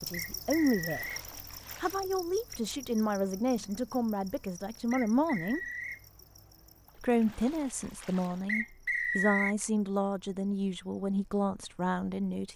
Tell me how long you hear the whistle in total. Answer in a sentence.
You can hear the whistle for 3 seconds altogether.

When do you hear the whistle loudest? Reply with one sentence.
The volume of the whistle peaks at 9 seconds.